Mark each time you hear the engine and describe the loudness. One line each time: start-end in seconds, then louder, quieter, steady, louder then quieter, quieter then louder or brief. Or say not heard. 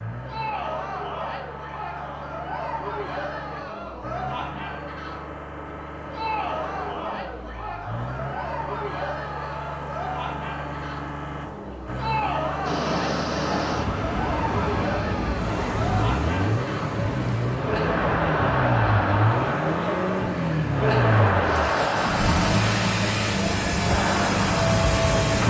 0.0-25.4 louder.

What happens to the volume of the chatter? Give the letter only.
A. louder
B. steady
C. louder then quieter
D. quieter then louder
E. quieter
A.